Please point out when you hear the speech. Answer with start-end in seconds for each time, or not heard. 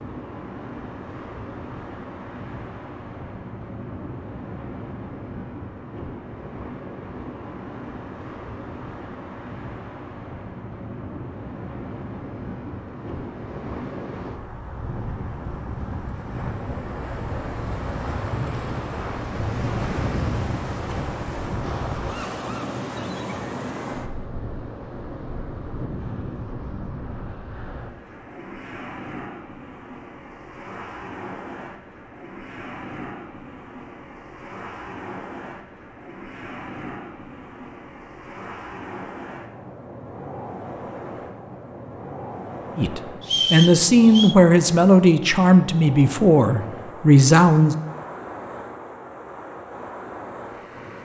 42.8-47.8.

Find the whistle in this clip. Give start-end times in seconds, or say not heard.
43.2-44.4.